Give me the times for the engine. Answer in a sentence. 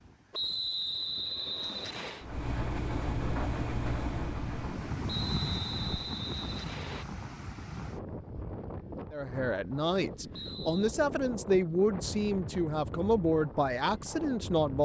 The engine can be heard from 2.2 to 6.1 s.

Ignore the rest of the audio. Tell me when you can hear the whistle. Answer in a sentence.
The whistle can be heard from 0.3 to 2.2 s, from 5.0 to 7.0 s and from 10.3 to 10.9 s.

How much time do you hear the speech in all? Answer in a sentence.
You can hear the speech for 6 seconds altogether.